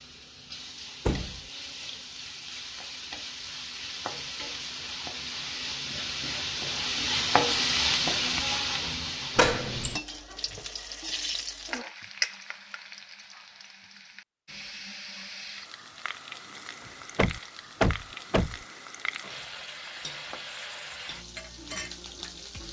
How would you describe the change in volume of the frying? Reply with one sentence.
The loudness of the frying goes up, then down.